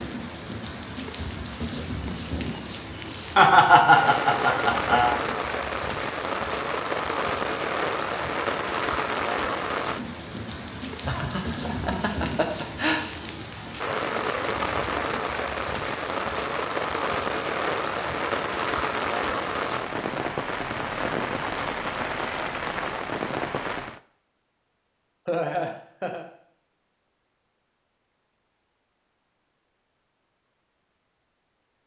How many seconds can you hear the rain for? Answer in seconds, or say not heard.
24 s.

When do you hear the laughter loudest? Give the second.
4 s.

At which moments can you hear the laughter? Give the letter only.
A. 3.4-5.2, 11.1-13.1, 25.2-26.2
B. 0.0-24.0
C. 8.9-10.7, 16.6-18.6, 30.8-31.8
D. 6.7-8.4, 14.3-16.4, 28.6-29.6
A.